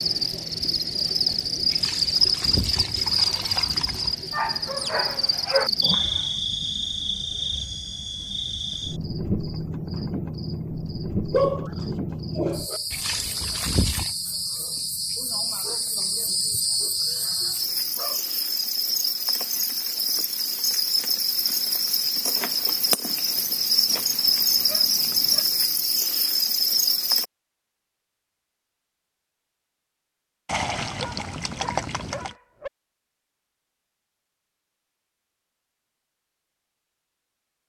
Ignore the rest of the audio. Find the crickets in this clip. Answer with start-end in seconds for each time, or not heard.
0.0-27.2.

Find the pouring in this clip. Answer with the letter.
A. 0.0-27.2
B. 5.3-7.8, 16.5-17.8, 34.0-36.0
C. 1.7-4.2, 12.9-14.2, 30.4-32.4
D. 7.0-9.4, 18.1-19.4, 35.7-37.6
C.